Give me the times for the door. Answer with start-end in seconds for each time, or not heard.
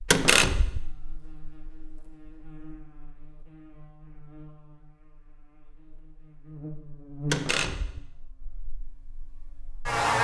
0.1-0.8, 7.3-8.0.